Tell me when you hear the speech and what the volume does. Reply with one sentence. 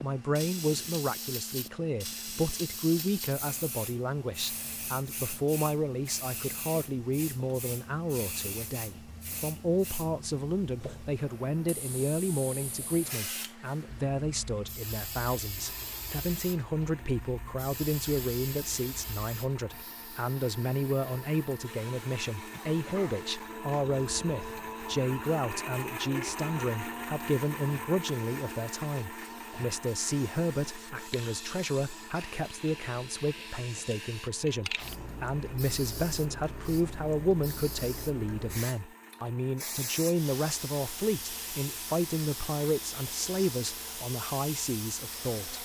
The speech can be heard from 0.0 to 45.5 s, at a steady volume.